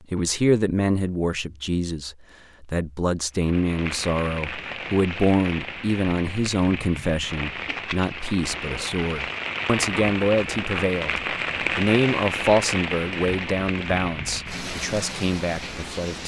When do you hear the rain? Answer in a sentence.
You can hear the rain from 3.4 to 16.2 s.